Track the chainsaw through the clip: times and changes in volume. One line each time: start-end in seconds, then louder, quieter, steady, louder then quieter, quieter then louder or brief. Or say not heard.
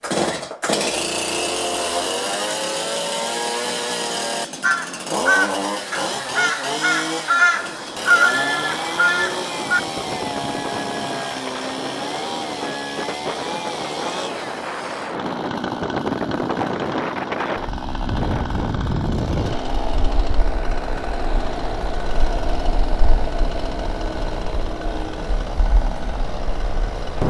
0.0-27.2 quieter.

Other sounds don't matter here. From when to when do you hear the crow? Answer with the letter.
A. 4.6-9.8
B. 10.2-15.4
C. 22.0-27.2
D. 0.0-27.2
A.